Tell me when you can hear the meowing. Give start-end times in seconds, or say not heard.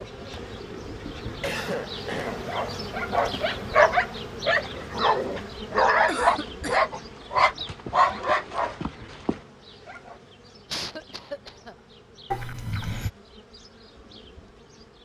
12.3-13.1.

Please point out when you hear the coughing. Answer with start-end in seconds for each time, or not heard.
1.4-2.5, 6.0-6.8, 10.7-11.8.